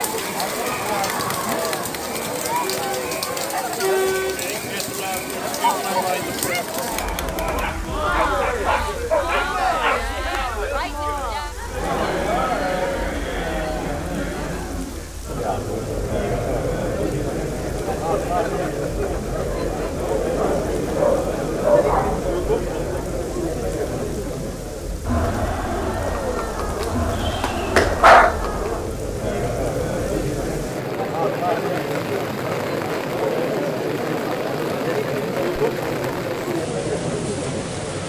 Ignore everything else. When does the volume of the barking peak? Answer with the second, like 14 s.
28 s.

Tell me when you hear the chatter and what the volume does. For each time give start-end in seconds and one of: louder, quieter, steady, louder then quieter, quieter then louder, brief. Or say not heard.
0.0-38.0 steady.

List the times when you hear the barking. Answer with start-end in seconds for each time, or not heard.
7.5-10.1, 20.3-22.2, 26.8-28.4.